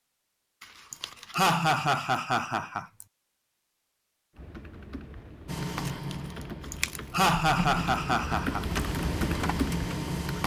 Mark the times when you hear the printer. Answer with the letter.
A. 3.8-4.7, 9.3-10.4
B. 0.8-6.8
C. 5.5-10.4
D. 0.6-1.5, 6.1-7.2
C.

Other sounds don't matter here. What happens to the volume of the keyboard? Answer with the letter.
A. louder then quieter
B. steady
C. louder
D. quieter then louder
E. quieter
C.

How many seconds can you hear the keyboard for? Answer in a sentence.
The keyboard can be heard for 6 seconds in total.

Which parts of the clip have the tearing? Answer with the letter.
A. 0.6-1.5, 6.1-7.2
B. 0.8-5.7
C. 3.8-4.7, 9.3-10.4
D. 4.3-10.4
A.